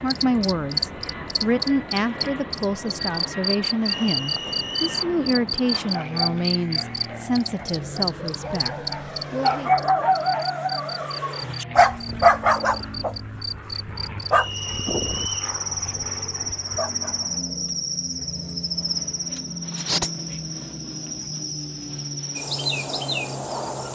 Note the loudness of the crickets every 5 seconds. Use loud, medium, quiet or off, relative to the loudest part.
loud, loud, medium, loud, loud.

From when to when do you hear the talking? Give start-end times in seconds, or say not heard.
0.0-9.7.